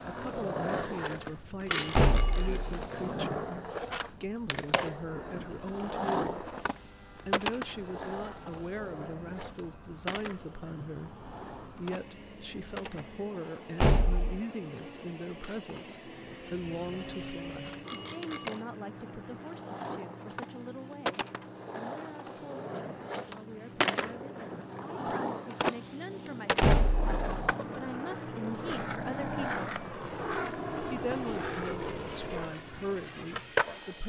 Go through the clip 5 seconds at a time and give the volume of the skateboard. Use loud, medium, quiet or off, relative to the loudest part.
loud, loud, medium, medium, loud, loud, loud.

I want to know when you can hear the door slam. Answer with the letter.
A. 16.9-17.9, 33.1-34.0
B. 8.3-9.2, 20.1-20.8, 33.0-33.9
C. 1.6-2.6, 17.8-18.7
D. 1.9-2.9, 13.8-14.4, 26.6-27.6
D.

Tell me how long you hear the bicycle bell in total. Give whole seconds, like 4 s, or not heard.
2 s.